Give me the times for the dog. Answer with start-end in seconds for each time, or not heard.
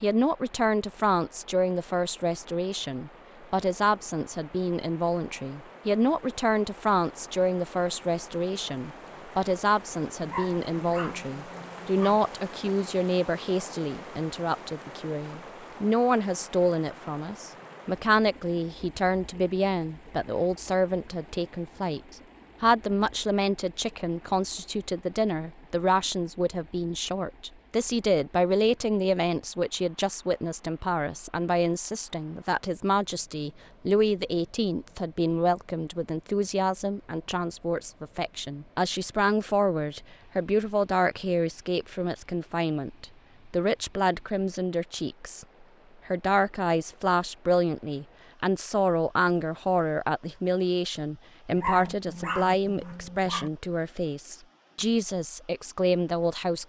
10.2-12.2, 51.5-53.5.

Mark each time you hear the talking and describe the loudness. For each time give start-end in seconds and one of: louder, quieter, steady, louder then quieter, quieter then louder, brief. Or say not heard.
0.0-45.5 steady
46.0-56.6 steady.